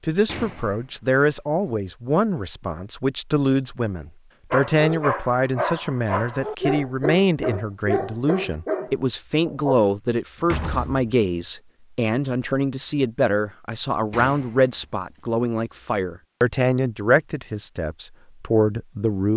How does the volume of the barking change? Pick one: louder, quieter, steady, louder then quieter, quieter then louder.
steady.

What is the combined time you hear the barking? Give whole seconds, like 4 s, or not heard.
5 s.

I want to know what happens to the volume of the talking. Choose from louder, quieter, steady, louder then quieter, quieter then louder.
steady.